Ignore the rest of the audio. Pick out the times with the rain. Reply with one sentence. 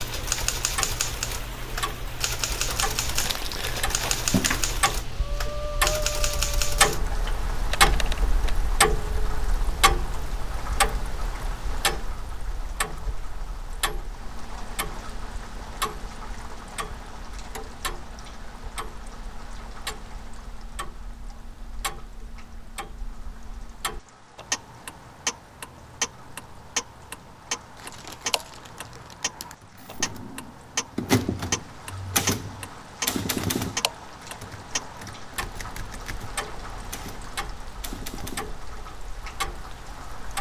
The rain can be heard from 0.0 to 40.3 s.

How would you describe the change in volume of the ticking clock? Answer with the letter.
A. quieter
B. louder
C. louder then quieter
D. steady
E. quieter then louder
E.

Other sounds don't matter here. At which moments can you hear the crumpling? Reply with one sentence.
The crumpling can be heard from 2.6 to 4.7 s and from 27.8 to 29.6 s.